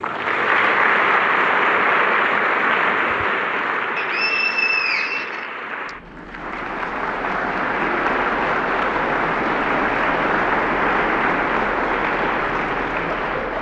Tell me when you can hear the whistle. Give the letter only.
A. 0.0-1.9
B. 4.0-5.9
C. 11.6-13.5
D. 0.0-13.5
B.